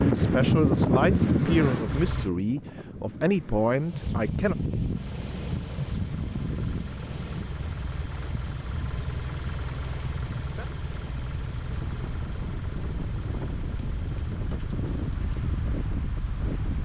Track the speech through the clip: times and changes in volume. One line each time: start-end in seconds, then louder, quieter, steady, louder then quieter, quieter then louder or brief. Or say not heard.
0.1-4.5 steady.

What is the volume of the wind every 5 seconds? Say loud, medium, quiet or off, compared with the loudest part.
loud, medium, medium, medium.